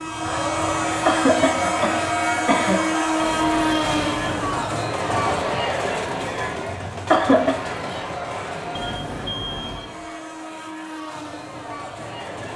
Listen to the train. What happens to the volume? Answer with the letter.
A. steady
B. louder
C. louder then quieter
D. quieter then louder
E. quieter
E.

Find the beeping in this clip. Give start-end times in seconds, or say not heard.
3.1-4.7, 8.8-9.9.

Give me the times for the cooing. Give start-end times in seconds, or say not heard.
not heard.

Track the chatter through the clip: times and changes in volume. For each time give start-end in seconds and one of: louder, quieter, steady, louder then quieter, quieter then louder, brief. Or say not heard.
0.0-12.5 quieter.